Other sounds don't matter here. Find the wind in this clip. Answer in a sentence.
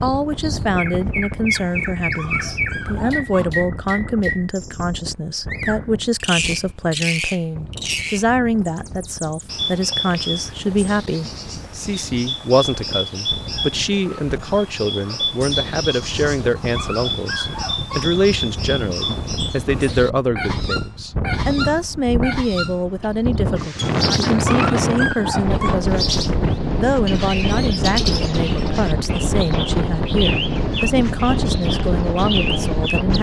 The wind can be heard from 0.0 to 33.1 s.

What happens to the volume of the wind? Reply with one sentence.
The volume of the wind goes down, then up.